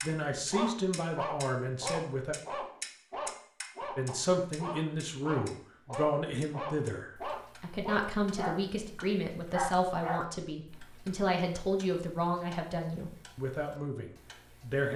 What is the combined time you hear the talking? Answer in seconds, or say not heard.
13 s.